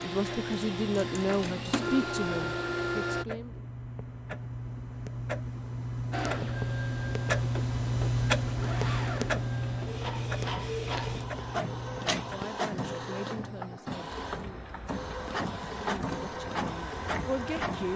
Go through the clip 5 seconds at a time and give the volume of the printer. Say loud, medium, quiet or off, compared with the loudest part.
loud, medium, loud, loud.